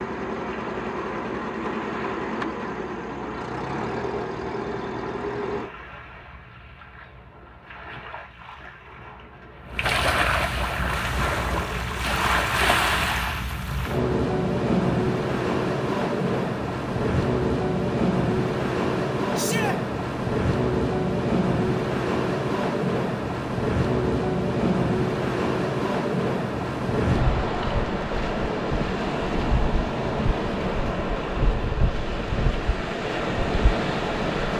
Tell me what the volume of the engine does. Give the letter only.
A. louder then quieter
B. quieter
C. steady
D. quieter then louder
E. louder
C.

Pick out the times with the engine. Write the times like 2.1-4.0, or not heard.
0.0-5.7.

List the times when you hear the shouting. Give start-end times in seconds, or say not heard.
19.4-19.8.